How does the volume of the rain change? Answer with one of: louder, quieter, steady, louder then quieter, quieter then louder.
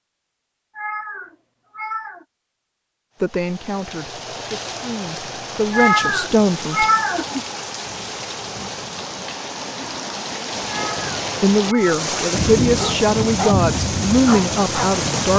louder.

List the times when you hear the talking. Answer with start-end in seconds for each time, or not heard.
3.2-6.8, 11.4-15.3.